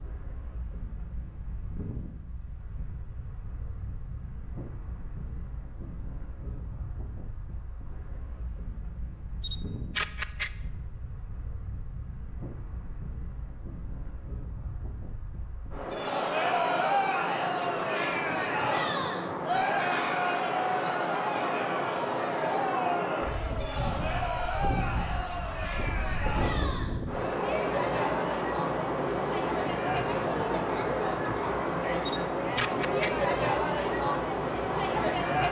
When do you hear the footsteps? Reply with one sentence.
The footsteps can't be heard in this clip.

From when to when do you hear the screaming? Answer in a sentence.
You can't hear the screaming here.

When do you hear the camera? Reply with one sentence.
The camera can be heard from 9.4 to 10.5 s and from 32.0 to 33.1 s.